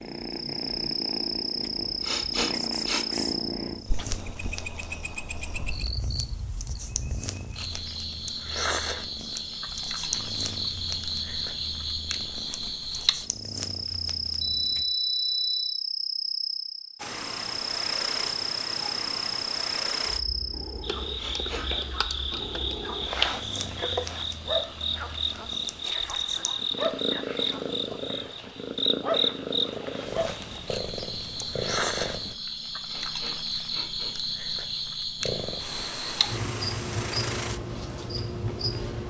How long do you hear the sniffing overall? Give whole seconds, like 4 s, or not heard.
3 s.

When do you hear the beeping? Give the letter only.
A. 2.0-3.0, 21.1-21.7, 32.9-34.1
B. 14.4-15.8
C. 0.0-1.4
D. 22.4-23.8
B.